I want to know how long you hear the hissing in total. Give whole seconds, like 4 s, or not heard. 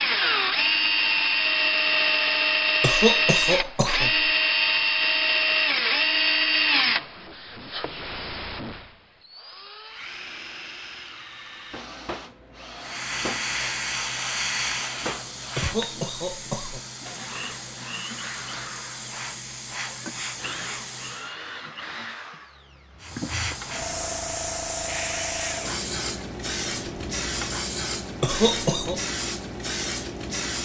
16 s.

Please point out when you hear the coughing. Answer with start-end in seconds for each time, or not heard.
2.8-4.3, 15.6-16.8, 28.2-29.0.